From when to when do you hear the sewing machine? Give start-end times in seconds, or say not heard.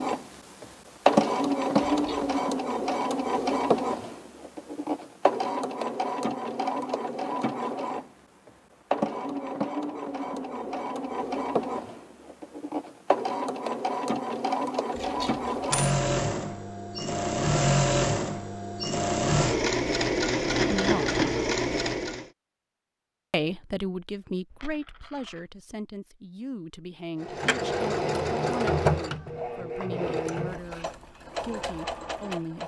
0.0-22.2, 27.2-32.6.